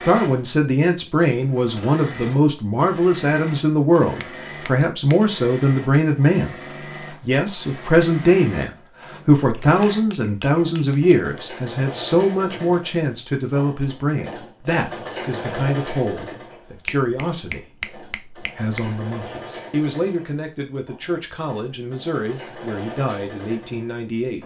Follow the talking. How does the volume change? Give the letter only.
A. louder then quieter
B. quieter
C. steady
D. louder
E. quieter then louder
B.